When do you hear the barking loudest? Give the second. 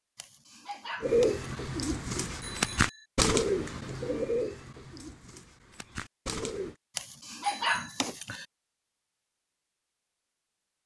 8 s.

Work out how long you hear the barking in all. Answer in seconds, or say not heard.
3 s.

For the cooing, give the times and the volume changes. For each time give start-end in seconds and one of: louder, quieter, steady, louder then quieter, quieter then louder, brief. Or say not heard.
1.0-6.8 louder then quieter.